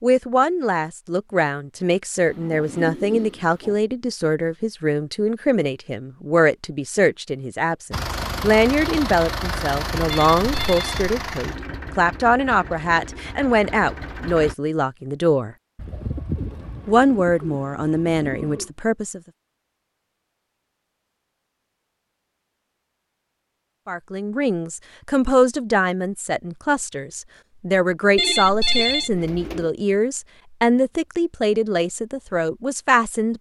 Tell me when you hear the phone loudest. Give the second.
29 s.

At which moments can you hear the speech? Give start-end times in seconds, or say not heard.
0.0-15.6, 16.9-19.2, 23.9-33.3.